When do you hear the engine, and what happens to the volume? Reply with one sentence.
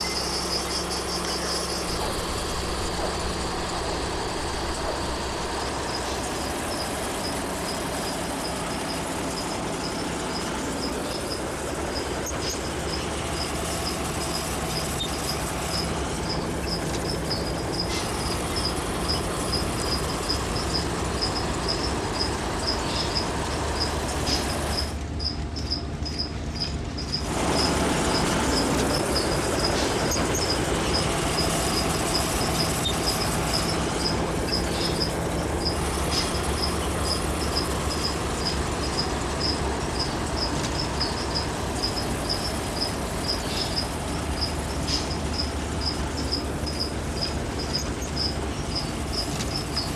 The engine can be heard from 0.0 to 25.0 s, at a steady volume; and from 27.1 to 49.9 s, getting quieter.